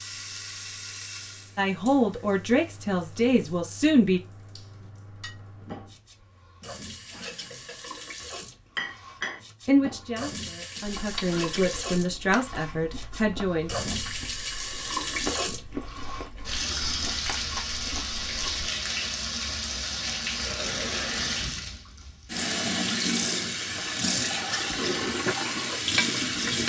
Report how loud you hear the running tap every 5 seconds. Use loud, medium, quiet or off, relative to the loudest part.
quiet, quiet, medium, loud, loud, loud.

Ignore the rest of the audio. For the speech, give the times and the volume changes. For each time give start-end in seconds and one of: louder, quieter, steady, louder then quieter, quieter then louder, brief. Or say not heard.
1.6-4.2 brief
9.7-13.8 louder.